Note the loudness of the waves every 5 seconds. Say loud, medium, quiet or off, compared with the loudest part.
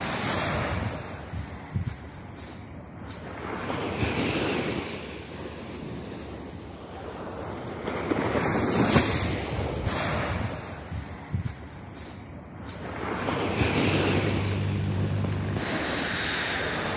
loud, loud, loud, medium.